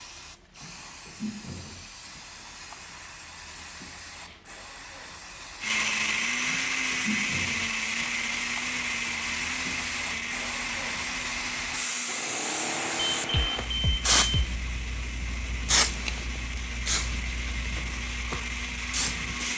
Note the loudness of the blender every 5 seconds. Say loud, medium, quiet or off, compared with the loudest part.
off, loud, medium, medium.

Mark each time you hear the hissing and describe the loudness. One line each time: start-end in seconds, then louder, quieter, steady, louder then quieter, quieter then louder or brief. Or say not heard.
0.0-19.5 louder.